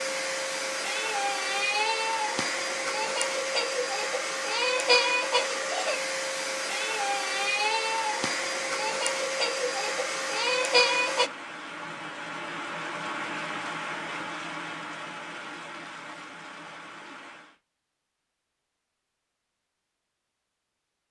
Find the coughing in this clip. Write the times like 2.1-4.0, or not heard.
not heard.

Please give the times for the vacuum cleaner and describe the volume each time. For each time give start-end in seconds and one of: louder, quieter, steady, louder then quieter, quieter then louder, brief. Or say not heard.
0.0-11.3 steady.